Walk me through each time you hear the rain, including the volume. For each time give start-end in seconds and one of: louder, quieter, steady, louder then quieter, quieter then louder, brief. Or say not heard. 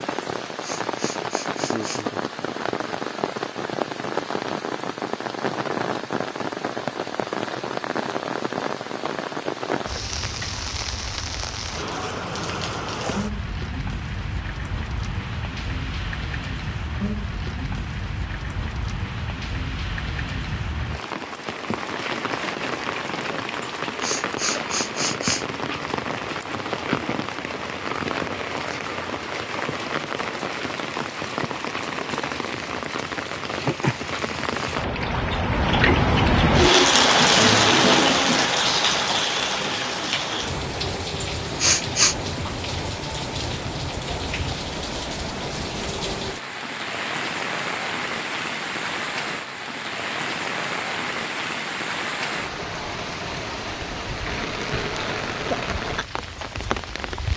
0.0-57.3 louder then quieter.